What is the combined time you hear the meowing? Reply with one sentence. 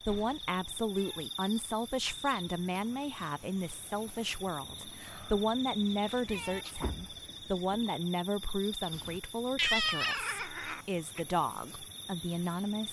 The meowing can be heard for 6 seconds in total.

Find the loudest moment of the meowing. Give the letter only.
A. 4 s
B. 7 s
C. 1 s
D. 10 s
D.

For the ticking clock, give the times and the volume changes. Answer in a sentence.
The ticking clock can't be heard in this clip.